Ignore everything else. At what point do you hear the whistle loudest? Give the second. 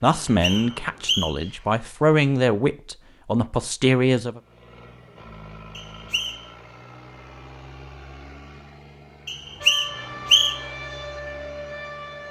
10 s.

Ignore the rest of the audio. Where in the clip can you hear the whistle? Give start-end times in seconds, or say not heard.
0.2-1.5, 5.8-6.5, 9.2-10.6.